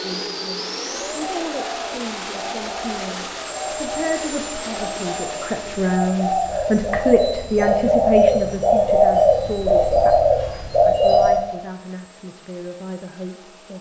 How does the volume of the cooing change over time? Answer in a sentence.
The volume of the cooing goes up.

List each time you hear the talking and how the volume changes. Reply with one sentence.
You can hear the talking from 0.0 to 13.7 s, getting louder then quieter.